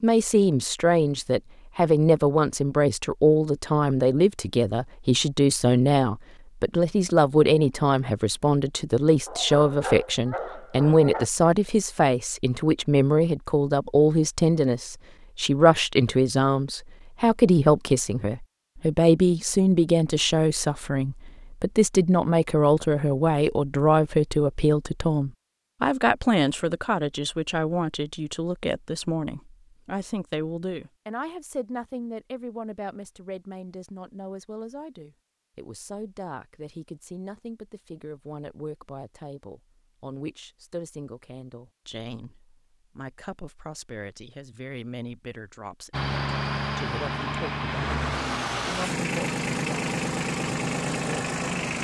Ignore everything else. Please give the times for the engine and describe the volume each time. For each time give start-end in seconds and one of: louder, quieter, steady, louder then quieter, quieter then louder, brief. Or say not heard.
45.9-51.7 steady.